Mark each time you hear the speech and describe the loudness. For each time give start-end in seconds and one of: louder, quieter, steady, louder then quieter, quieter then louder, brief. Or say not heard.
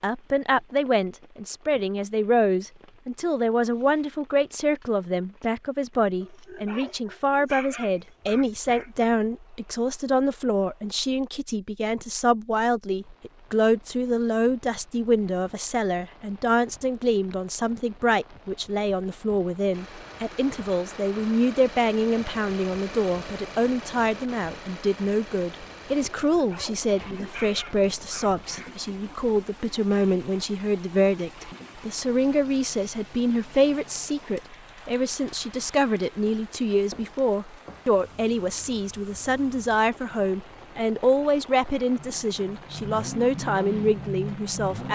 0.0-44.9 steady.